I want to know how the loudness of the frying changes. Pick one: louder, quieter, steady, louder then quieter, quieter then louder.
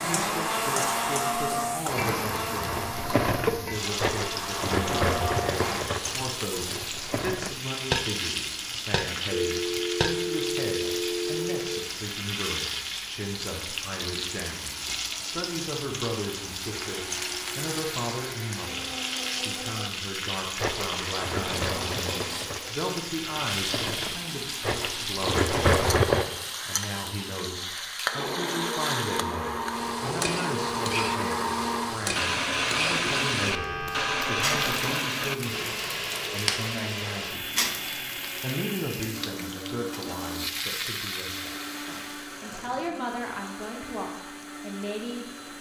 steady.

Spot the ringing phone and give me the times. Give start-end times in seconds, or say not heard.
9.3-11.8, 33.5-34.5.